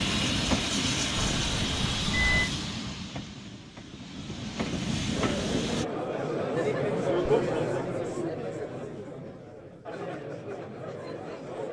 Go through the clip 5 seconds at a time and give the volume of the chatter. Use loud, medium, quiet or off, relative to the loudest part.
off, loud, medium.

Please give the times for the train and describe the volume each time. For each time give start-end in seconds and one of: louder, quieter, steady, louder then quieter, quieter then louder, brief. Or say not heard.
0.0-5.8 quieter then louder.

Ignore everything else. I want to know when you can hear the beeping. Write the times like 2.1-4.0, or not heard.
1.1-2.5.